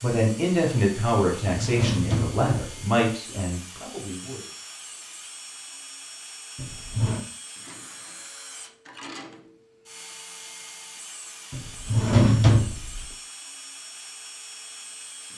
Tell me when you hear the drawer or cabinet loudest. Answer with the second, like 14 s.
12 s.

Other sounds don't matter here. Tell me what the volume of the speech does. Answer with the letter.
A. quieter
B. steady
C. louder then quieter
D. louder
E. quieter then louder
A.